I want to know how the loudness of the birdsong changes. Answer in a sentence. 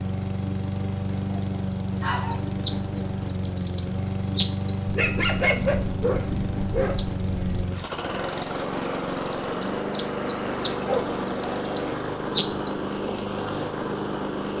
The loudness of the birdsong goes down, then up.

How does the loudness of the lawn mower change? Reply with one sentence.
The loudness of the lawn mower stays about the same.